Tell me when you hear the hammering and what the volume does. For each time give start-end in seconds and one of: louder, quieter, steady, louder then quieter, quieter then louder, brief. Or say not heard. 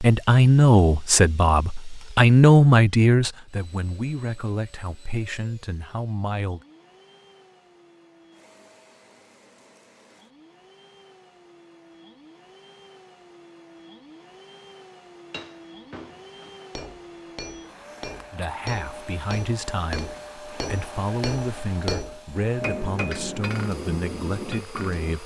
15.3-25.1 louder.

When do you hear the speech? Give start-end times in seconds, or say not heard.
0.0-6.6, 18.3-25.2.